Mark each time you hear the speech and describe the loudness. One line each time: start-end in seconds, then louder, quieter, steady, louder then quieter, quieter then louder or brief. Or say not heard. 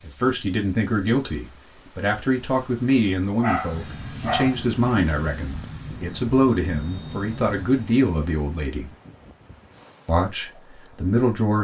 0.0-8.9 steady
10.1-11.6 brief.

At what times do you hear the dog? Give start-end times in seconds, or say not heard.
3.4-4.5.